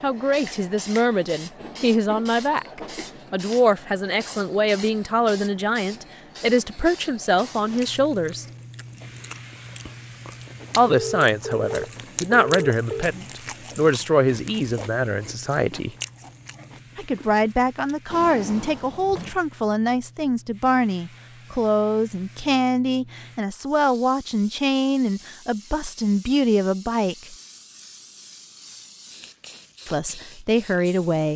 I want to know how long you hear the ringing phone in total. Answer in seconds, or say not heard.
2 s.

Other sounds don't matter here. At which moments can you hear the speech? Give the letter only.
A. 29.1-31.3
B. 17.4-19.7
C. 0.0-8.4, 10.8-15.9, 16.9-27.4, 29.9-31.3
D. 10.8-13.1
C.